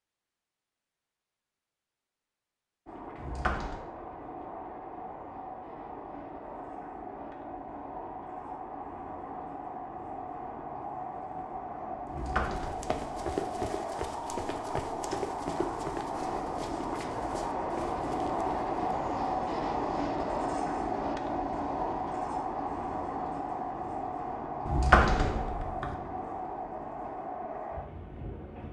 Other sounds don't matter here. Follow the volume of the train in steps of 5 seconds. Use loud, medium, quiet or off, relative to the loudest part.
medium, medium, medium, loud, loud, medium.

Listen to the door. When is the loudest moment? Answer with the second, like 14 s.
25 s.